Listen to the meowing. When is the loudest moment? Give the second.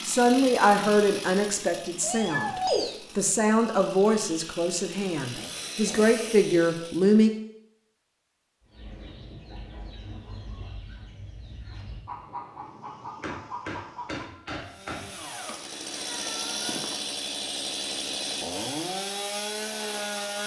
3 s.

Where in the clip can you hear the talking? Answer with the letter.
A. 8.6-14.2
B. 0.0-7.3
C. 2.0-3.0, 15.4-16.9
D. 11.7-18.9
B.